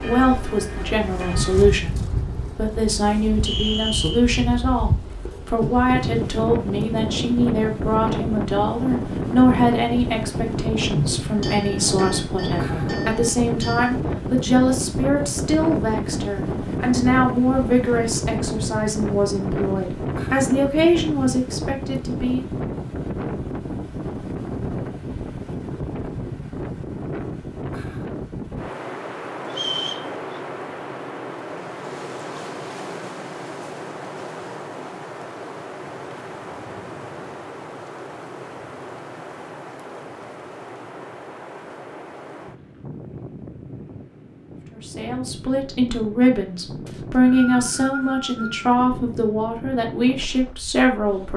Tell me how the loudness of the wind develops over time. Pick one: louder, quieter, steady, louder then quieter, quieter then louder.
quieter.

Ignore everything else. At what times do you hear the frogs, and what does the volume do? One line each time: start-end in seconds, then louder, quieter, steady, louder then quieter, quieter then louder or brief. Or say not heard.
not heard.